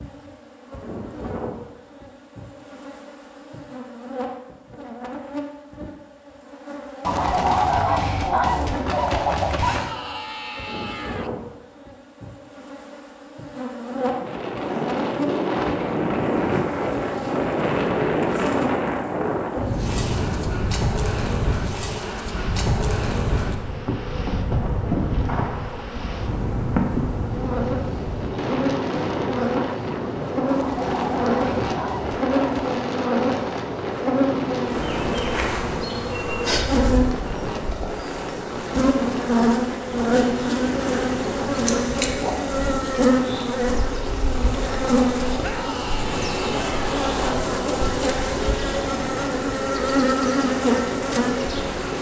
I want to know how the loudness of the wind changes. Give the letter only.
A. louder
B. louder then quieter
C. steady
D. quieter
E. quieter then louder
D.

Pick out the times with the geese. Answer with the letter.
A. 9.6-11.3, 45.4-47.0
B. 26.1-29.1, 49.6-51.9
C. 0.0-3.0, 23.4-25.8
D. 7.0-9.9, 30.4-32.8
D.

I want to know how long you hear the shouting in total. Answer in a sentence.
The shouting can be heard for 3 seconds in total.